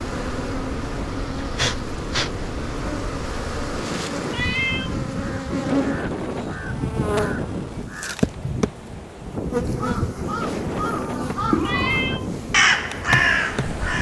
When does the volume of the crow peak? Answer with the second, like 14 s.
13 s.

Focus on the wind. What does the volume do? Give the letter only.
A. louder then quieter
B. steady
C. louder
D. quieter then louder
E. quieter
B.